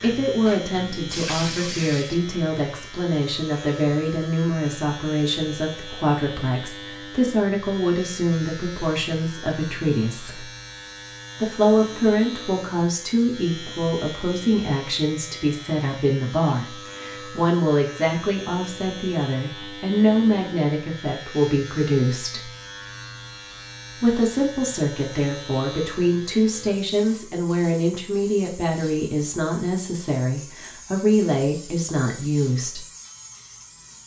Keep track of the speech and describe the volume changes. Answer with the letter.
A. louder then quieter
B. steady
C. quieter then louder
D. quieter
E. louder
B.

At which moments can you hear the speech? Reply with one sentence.
You can hear the speech from 0.0 to 10.4 s, from 11.4 to 22.4 s and from 23.9 to 32.9 s.